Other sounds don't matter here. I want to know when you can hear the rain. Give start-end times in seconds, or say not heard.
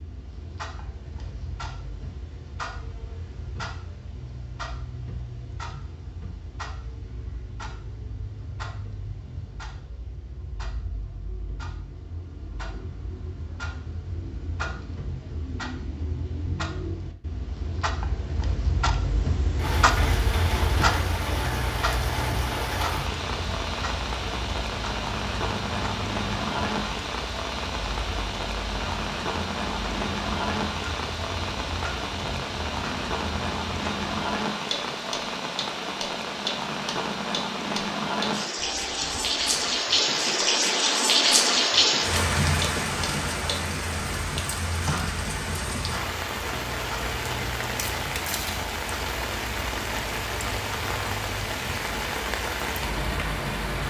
19.6-53.8.